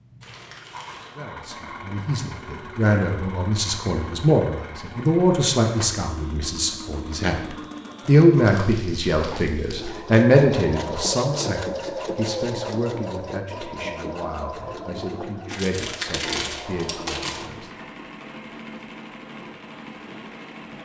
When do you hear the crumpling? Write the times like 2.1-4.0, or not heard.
0.2-1.1, 8.4-10.1, 15.5-17.5.